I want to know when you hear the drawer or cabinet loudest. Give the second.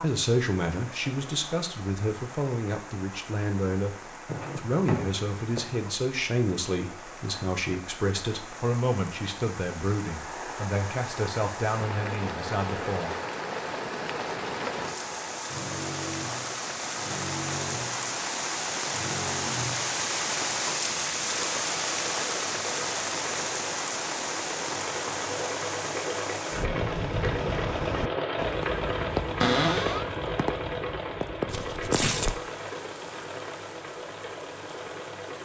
30 s.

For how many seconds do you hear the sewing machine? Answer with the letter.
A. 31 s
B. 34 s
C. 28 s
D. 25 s
D.